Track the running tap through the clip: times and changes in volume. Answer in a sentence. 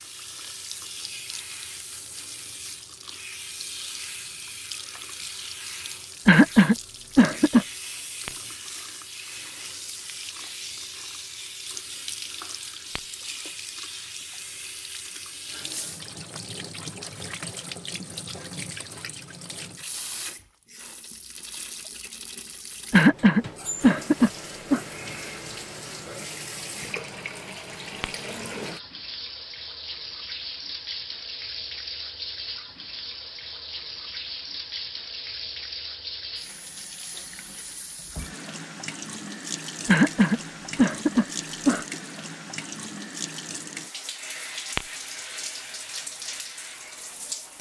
You can hear the running tap from 0.0 to 47.5 s, at a steady volume.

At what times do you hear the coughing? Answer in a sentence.
The coughing can be heard from 6.2 to 7.7 s, from 22.9 to 24.8 s and from 39.9 to 42.0 s.